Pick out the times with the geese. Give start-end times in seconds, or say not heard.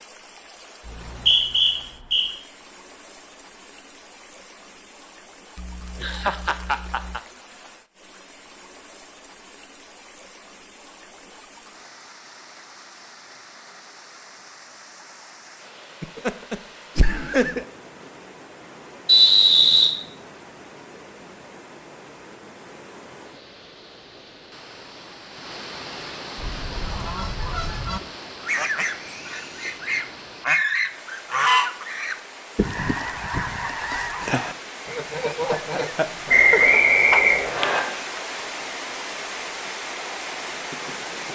26.4-38.2.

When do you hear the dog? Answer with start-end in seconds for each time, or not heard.
not heard.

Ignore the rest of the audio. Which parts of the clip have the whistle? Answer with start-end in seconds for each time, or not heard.
0.8-2.2, 19.1-19.9, 36.2-37.8.